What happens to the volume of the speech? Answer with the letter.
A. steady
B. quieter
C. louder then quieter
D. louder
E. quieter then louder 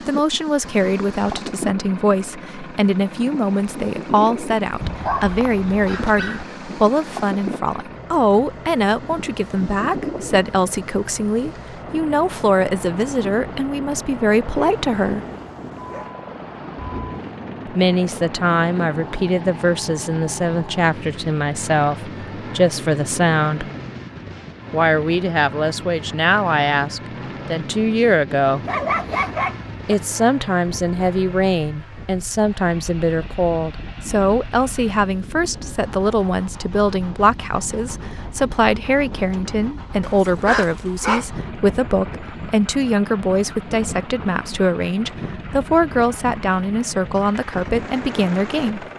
A.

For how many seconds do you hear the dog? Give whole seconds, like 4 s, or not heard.
6 s.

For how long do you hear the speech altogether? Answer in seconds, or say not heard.
44 s.